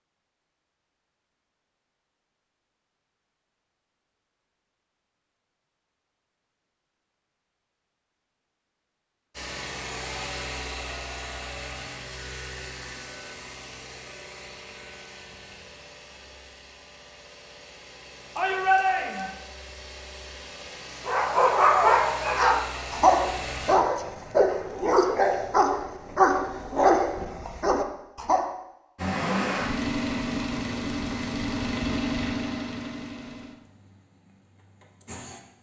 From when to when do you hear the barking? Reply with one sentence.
You can hear the barking from 21.1 to 28.6 s.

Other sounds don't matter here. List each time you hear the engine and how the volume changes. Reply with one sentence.
The engine can be heard from 9.3 to 23.8 s, getting quieter then louder; and from 28.9 to 35.5 s, getting quieter.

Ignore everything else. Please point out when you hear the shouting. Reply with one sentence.
You can hear the shouting from 18.4 to 19.4 s.